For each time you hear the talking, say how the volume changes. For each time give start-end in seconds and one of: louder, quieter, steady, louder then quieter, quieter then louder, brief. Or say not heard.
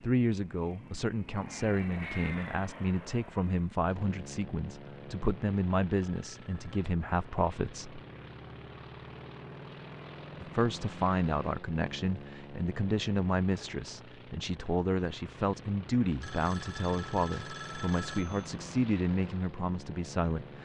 0.0-8.0 steady
10.4-20.6 steady.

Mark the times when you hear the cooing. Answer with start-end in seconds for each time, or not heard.
not heard.